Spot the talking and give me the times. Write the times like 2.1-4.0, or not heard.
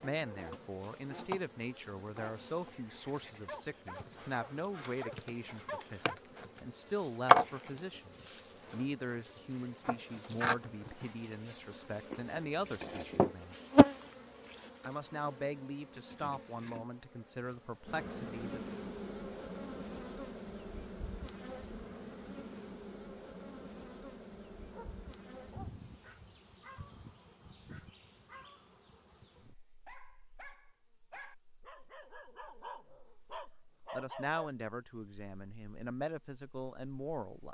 0.0-13.6, 14.8-18.7, 33.9-37.4.